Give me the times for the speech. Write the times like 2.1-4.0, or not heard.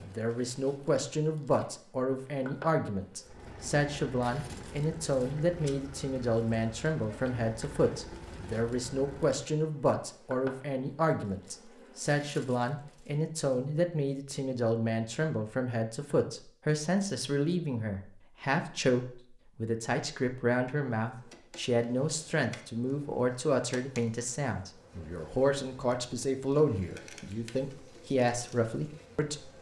0.0-29.5.